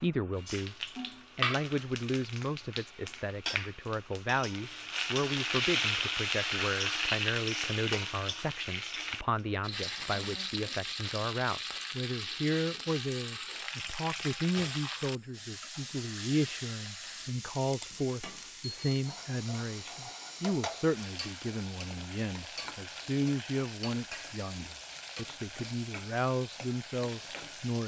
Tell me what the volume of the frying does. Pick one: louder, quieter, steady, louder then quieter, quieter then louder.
quieter.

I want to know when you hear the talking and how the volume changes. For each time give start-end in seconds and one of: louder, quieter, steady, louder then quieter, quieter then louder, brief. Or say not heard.
0.0-0.8 brief
1.4-27.8 steady.